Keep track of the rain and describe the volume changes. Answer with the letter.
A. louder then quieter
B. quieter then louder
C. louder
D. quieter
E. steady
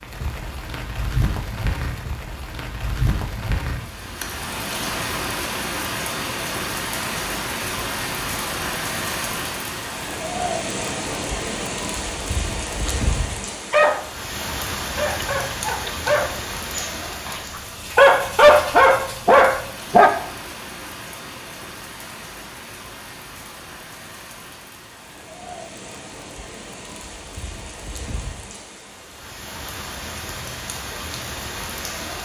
D.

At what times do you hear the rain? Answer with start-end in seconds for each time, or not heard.
0.0-32.2.